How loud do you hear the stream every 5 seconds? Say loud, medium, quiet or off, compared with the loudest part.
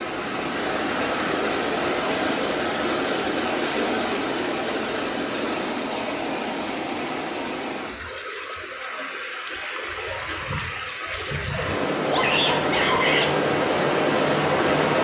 loud, medium, loud.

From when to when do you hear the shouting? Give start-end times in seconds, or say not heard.
12.1-13.3.